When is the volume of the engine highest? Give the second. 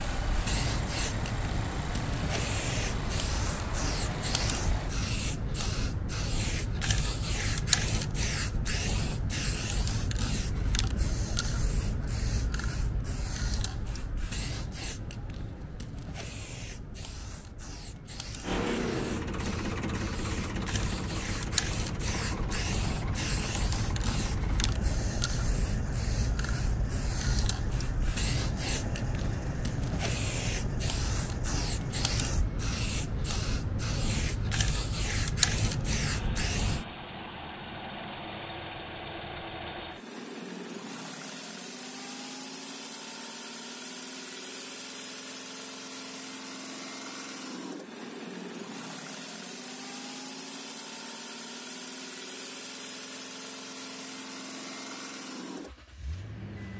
19 s.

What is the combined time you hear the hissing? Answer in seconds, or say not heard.
37 s.